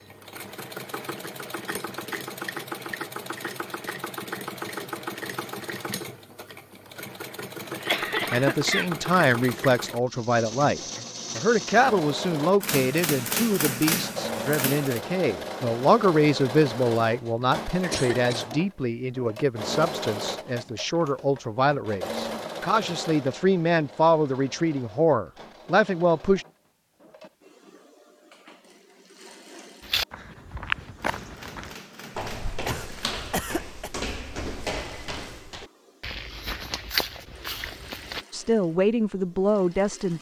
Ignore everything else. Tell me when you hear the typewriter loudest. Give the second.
14 s.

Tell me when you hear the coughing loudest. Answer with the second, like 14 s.
8 s.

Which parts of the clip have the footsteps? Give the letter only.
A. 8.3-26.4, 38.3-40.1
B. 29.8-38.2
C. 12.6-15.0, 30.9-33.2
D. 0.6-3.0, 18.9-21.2
B.